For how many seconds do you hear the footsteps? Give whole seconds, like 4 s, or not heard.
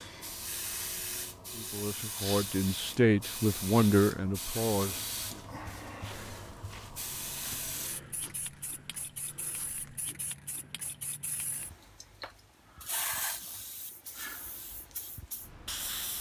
4 s.